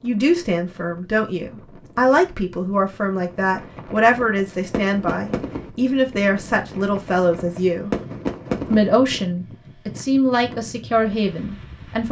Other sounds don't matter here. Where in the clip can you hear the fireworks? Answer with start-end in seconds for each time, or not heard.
3.4-9.2.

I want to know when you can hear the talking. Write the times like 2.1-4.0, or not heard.
0.0-7.9, 8.7-12.0.